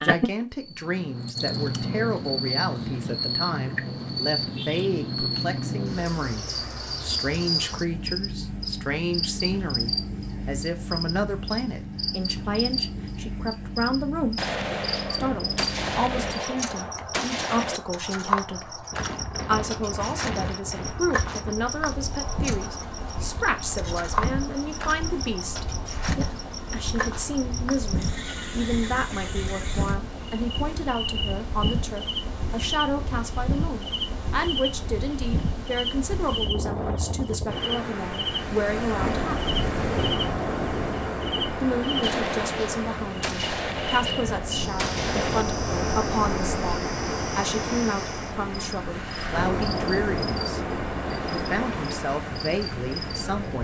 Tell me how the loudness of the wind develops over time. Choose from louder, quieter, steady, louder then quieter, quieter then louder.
louder.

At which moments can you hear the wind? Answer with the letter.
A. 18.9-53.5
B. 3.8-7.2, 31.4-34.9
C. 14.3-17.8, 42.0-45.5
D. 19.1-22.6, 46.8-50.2
A.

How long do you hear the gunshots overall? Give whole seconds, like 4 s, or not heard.
7 s.